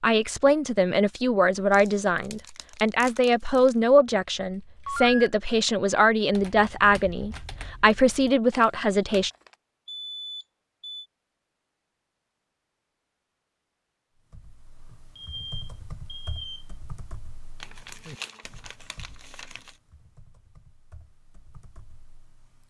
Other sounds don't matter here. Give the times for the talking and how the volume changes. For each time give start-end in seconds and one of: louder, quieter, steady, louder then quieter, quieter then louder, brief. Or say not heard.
0.0-9.3 steady.